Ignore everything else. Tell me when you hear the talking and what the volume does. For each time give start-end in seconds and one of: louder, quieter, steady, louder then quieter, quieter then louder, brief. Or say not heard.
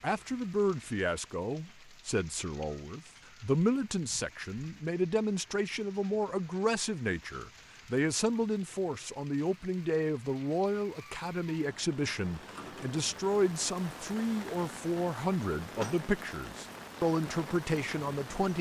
0.0-18.5 steady.